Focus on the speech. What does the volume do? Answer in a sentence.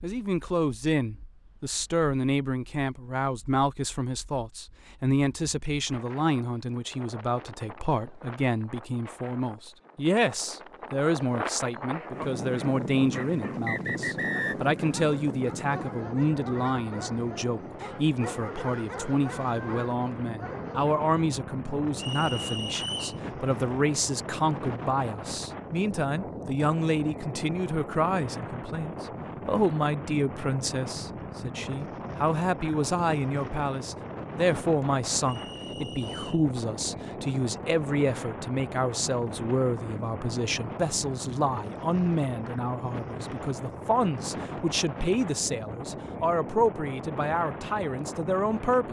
The volume of the speech stays about the same.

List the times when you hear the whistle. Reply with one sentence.
You can hear the whistle from 13.2 to 14.6 s, from 21.9 to 23.2 s and from 35.2 to 36.5 s.